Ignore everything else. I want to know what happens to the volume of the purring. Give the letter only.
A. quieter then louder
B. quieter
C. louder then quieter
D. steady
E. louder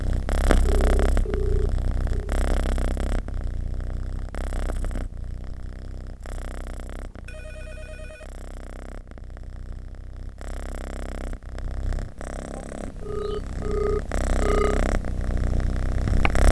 A.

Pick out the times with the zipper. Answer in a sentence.
The zipper can't be heard in this clip.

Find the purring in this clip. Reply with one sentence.
The purring can be heard from 0.0 to 16.4 s.